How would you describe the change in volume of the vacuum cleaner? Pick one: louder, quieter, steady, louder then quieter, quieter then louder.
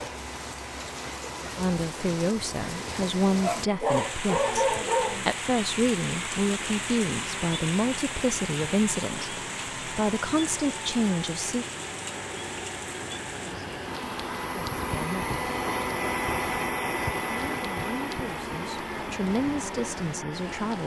louder.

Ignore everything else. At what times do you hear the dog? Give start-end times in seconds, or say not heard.
3.4-5.3.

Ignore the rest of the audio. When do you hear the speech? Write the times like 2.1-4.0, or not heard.
1.6-11.7, 14.6-15.2, 17.3-20.8.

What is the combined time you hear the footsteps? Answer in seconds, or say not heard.
not heard.